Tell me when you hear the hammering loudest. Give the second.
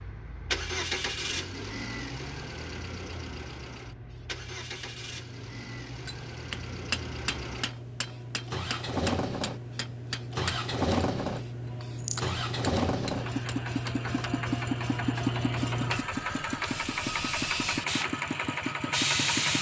7 s.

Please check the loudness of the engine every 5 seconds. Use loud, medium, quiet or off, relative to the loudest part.
medium, medium, loud, loud.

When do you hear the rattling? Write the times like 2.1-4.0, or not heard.
11.9-12.3.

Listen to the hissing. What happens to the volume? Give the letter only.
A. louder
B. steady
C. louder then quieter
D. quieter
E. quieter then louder
A.